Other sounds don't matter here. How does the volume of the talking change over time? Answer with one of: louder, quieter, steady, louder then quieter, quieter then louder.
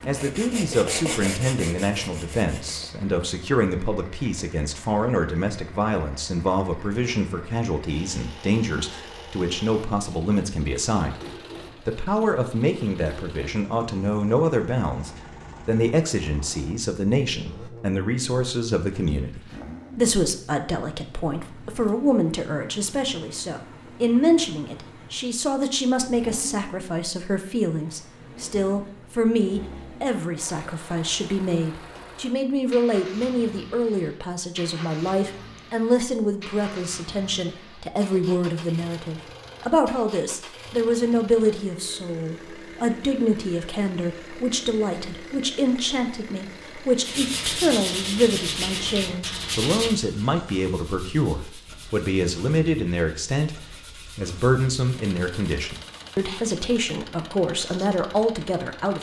steady.